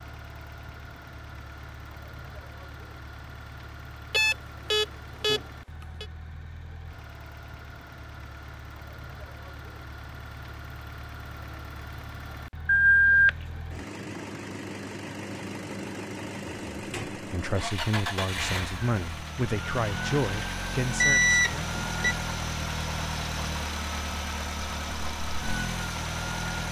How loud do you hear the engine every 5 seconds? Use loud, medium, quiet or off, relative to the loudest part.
quiet, quiet, medium, loud, loud, loud.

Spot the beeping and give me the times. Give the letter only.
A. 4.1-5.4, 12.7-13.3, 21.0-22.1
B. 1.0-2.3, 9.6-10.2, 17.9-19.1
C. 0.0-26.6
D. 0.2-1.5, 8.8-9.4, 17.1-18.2
A.